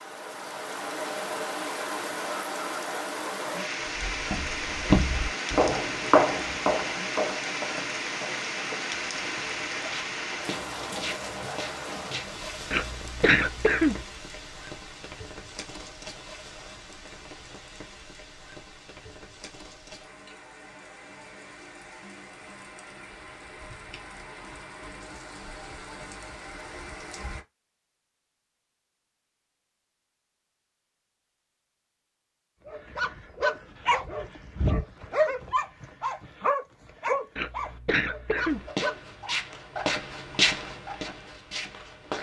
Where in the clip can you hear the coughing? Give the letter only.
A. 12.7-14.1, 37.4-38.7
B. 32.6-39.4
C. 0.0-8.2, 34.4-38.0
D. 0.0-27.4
A.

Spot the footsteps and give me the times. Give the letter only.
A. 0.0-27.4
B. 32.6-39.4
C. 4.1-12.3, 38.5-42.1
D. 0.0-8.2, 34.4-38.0
C.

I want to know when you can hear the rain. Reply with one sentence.
The rain can be heard from 0.0 to 27.4 s.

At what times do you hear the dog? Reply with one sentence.
You can hear the dog from 32.6 to 39.4 s.